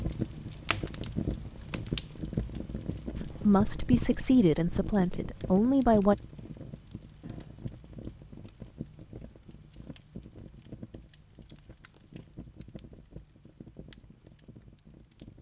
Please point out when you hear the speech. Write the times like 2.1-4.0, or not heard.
3.1-6.2.